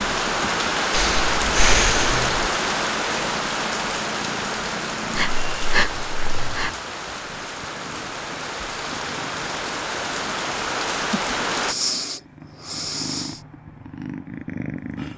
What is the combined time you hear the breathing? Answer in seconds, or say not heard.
5 s.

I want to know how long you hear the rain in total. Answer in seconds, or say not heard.
12 s.